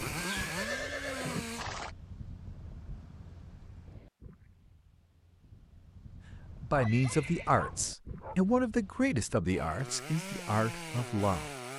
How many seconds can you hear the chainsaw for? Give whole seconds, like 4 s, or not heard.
4 s.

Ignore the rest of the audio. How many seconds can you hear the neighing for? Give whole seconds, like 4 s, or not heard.
3 s.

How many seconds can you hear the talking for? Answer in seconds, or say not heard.
5 s.